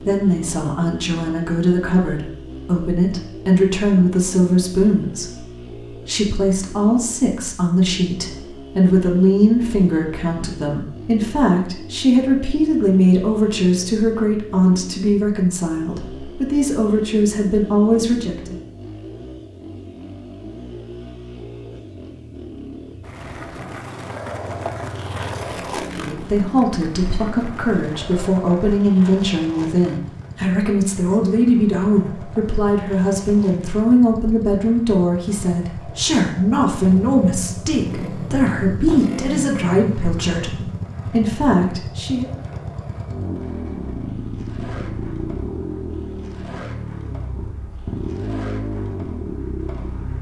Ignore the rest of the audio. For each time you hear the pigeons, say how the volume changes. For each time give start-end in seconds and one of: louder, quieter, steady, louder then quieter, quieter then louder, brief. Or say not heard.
not heard.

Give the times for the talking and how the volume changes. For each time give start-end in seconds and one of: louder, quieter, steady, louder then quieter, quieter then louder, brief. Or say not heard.
0.0-18.6 steady
25.9-42.3 steady.